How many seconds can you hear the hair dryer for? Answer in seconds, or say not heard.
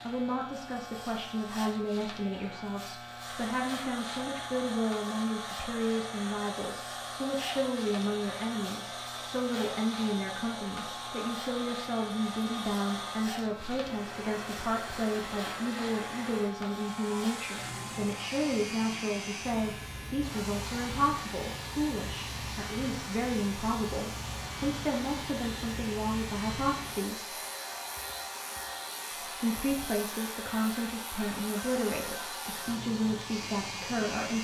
31 s.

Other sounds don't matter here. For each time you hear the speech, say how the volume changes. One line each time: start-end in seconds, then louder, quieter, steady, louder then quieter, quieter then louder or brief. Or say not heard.
0.0-27.4 steady
29.2-34.3 steady.